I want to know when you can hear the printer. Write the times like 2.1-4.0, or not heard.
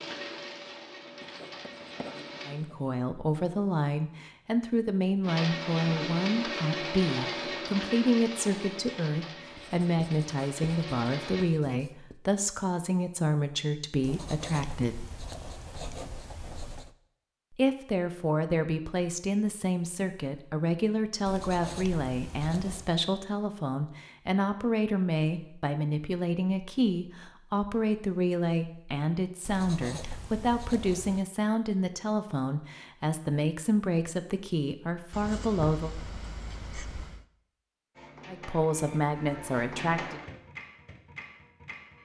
0.0-2.5, 5.2-11.4, 38.0-42.0.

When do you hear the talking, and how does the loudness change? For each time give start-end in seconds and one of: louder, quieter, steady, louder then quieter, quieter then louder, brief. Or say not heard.
2.5-15.1 steady
17.5-36.0 steady
38.2-40.2 brief.